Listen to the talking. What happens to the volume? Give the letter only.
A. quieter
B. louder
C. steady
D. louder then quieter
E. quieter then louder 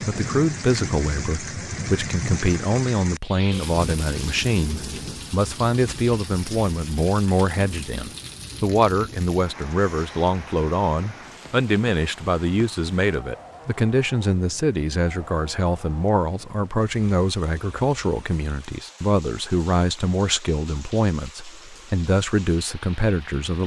C.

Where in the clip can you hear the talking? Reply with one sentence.
You can hear the talking from 0.0 to 23.6 s.